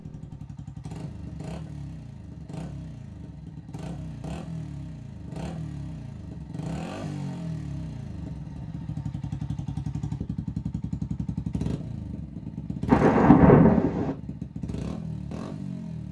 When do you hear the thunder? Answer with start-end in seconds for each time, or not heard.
12.8-14.2.